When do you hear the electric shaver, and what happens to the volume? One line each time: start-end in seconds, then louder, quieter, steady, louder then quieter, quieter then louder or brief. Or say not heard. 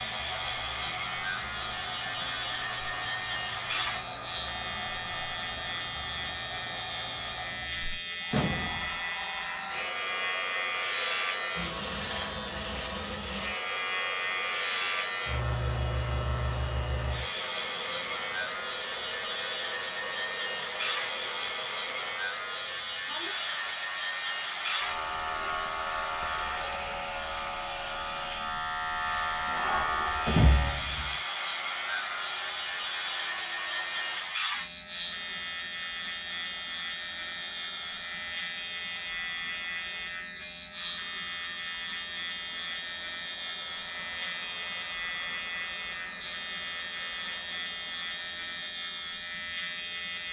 0.0-50.2 steady.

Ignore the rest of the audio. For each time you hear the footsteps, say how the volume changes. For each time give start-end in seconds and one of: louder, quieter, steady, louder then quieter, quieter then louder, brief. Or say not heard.
not heard.